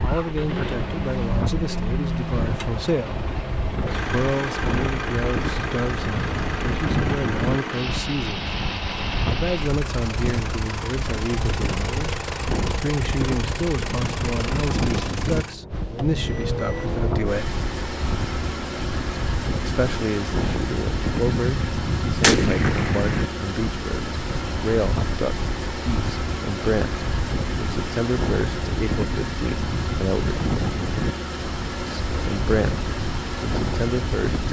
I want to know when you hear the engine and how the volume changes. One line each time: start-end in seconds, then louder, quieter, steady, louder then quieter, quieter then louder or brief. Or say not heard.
0.0-34.4 steady.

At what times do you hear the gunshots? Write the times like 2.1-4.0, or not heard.
21.2-23.2.